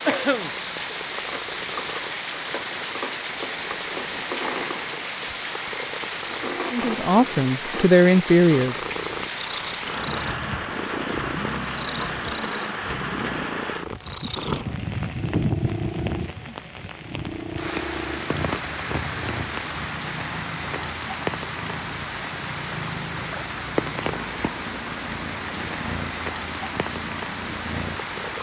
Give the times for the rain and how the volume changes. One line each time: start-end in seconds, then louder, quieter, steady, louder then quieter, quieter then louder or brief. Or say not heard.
0.0-28.3 steady.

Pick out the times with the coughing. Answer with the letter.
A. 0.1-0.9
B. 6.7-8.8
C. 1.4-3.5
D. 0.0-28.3
A.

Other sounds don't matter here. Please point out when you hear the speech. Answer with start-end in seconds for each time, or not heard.
6.7-8.8.